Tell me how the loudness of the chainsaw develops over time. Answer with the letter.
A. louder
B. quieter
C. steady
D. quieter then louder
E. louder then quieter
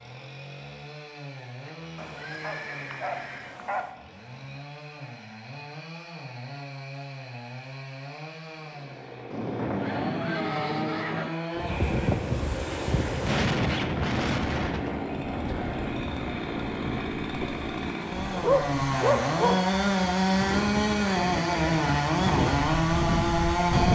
A.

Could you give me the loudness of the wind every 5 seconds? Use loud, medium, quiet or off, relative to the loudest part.
off, off, loud, medium, loud.